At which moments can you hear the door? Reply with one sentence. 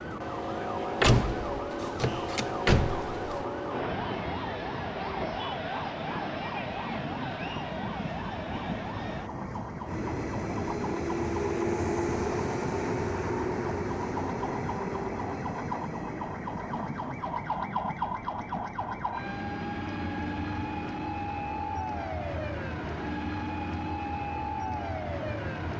The door can be heard from 1.0 to 3.4 s.